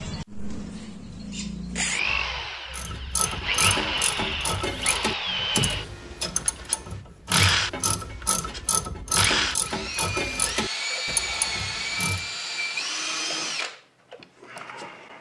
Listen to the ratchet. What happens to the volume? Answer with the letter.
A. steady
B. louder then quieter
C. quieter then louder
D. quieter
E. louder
A.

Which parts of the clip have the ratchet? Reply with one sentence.
The ratchet can be heard from 2.7 to 12.2 s.